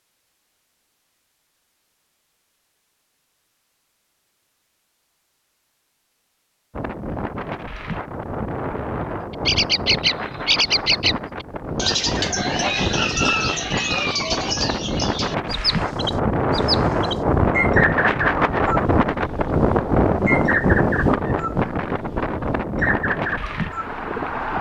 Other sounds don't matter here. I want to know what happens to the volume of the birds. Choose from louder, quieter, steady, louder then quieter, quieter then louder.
quieter.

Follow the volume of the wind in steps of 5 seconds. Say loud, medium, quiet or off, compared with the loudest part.
off, medium, medium, loud, loud.